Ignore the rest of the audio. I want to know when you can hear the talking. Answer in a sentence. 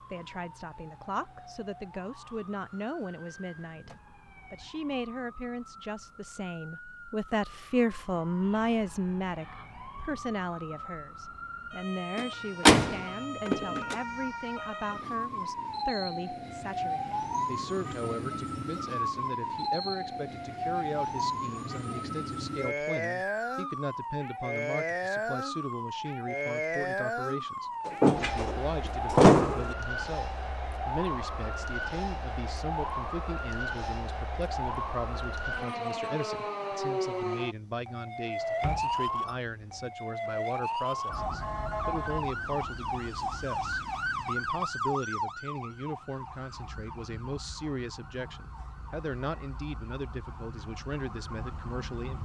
You can hear the talking from 0.1 to 52.2 s.